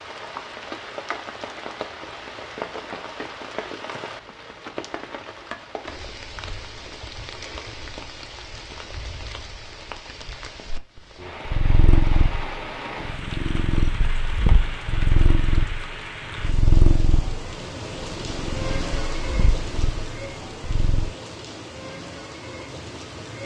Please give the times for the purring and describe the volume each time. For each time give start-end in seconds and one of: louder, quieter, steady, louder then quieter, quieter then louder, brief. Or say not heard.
11.4-21.1 quieter.